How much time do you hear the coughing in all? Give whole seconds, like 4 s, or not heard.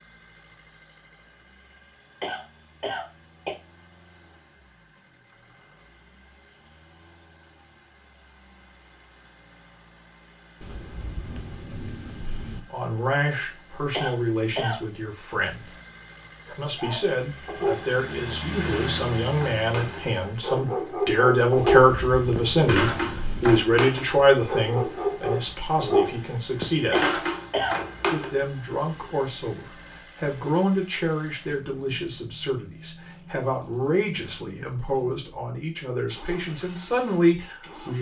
3 s.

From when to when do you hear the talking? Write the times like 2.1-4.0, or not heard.
12.7-15.7, 16.5-27.1, 28.1-37.9.